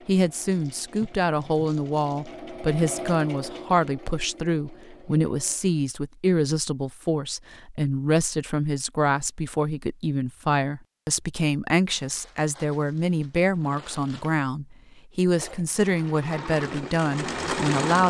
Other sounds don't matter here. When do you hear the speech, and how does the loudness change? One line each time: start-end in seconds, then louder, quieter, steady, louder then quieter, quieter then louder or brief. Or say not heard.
0.1-18.0 steady.